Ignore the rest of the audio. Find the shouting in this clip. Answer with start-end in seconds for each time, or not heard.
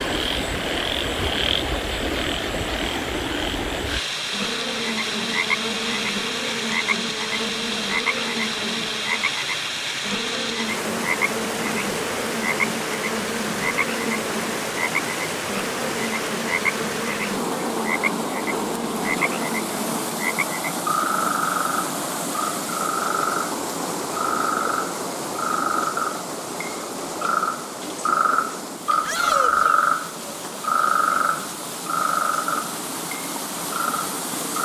29.1-29.8.